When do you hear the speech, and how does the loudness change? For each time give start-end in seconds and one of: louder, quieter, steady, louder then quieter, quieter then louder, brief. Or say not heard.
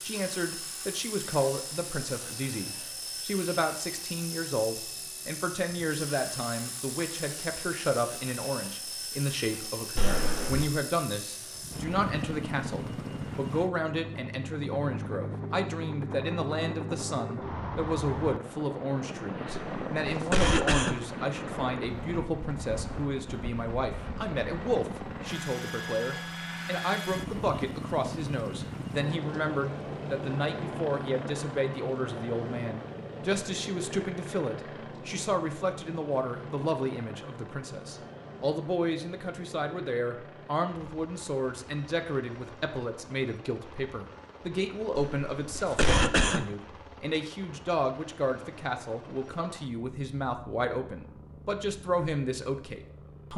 0.0-53.3 steady.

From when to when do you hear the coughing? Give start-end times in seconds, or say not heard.
9.9-10.7, 19.7-21.0, 45.0-46.5.